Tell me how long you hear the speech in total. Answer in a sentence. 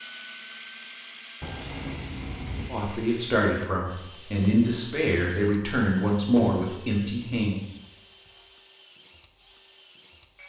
You can hear the speech for 5 seconds altogether.